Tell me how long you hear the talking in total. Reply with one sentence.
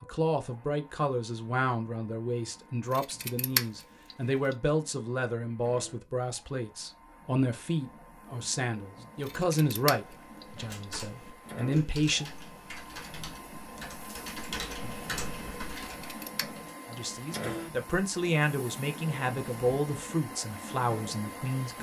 The talking can be heard for 17 seconds in total.